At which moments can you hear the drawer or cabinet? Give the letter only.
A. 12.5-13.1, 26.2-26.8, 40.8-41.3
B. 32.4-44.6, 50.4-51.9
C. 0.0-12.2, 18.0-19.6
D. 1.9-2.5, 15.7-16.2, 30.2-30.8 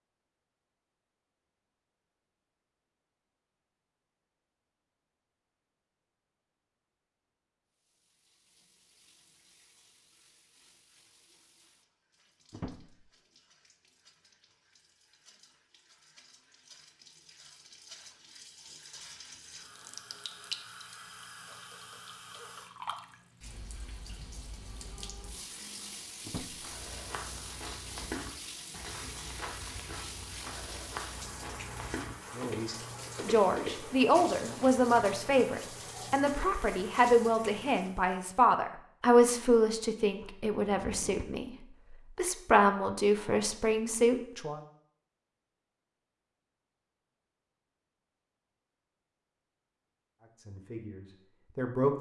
A.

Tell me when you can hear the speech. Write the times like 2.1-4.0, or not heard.
32.4-44.6, 50.4-51.9.